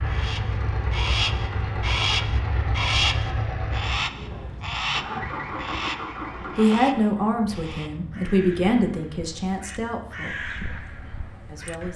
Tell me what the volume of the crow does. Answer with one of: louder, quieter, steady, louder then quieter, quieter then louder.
quieter then louder.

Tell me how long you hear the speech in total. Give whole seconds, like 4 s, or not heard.
4 s.